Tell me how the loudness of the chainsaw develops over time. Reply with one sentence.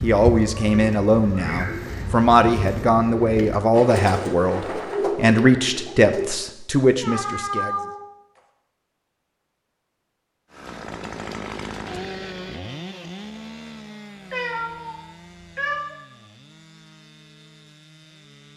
The volume of the chainsaw goes down.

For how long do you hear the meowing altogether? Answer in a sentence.
The meowing can be heard for 4 seconds in total.